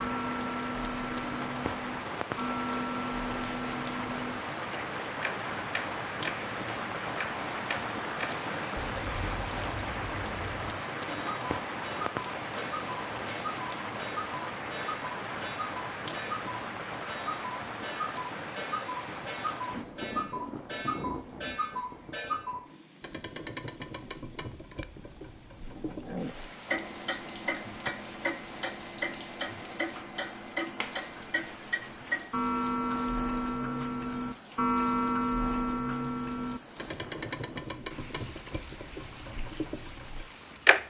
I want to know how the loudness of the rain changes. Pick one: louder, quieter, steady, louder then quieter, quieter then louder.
quieter.